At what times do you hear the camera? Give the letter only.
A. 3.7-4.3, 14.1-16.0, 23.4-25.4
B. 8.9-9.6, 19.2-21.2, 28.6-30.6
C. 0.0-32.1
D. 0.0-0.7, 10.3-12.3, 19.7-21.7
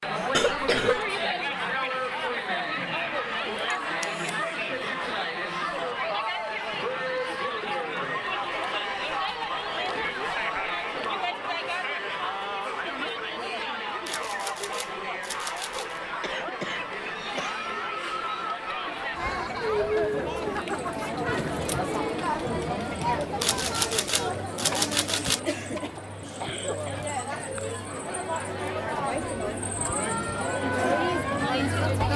A.